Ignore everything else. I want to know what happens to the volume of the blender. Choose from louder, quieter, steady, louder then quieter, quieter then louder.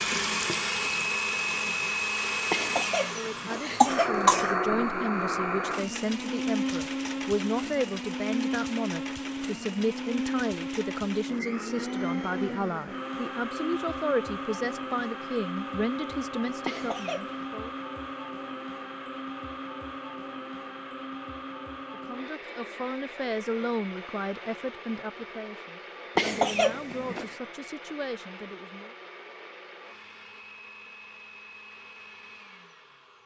quieter.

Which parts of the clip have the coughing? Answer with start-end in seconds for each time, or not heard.
2.5-4.5, 16.6-17.4, 26.1-27.4.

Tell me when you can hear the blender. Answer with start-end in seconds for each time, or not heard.
0.0-33.2.